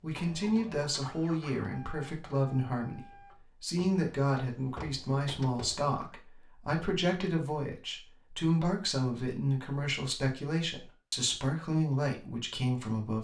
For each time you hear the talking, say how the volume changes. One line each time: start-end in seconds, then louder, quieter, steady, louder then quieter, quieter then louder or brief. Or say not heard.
0.0-13.1 steady.